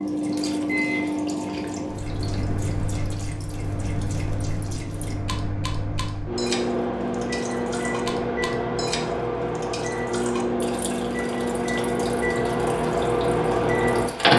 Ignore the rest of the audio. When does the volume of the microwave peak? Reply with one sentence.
The loudest moment of the microwave is at 14 seconds.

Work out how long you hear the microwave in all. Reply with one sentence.
You can hear the microwave for 14 seconds altogether.